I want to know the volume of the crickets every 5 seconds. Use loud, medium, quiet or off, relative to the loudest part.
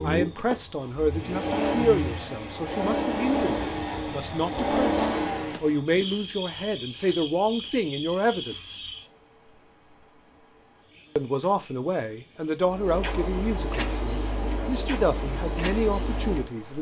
medium, medium, loud, loud.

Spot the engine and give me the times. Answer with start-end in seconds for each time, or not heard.
0.2-5.8.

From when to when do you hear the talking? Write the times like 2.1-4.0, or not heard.
0.0-8.8, 11.2-16.7.